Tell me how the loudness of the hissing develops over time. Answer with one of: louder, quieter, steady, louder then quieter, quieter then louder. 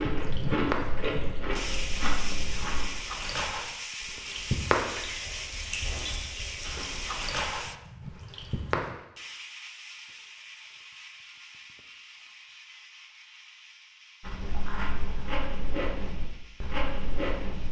quieter.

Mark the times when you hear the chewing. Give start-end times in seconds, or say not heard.
0.0-2.9, 14.2-17.6.